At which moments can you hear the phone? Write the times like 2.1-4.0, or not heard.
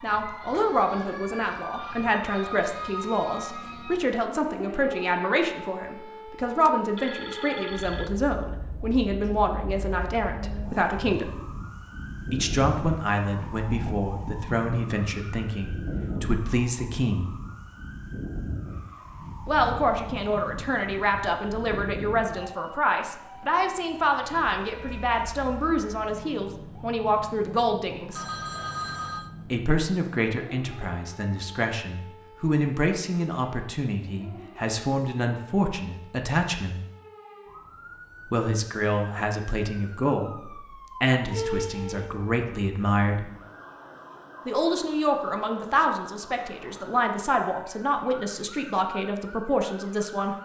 6.7-8.1, 28.1-29.3, 41.3-42.1.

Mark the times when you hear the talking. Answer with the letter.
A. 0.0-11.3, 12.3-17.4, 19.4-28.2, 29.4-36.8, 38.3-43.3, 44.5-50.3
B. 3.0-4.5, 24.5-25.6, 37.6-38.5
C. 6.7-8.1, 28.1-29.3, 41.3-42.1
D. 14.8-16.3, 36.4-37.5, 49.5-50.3
A.